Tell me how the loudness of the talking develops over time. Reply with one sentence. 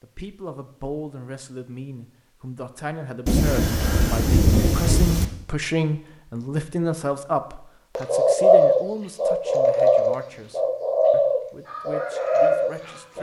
The loudness of the talking goes up, then down.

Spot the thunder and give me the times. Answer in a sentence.
The thunder can be heard from 3.2 to 5.2 s.